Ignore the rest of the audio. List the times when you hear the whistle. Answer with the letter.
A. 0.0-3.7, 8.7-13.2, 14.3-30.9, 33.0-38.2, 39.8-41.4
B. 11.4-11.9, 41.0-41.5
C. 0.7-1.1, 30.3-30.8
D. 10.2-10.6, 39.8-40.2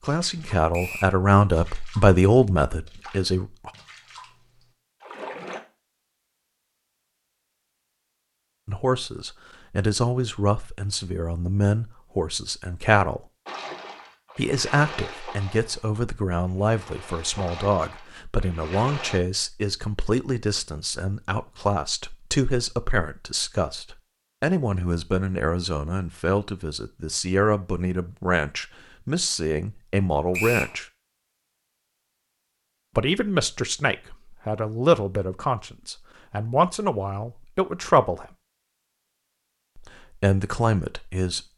C.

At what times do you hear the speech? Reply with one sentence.
The speech can be heard from 0.0 to 3.7 s, from 8.7 to 13.2 s, from 14.3 to 30.9 s, from 33.0 to 38.2 s and from 39.8 to 41.4 s.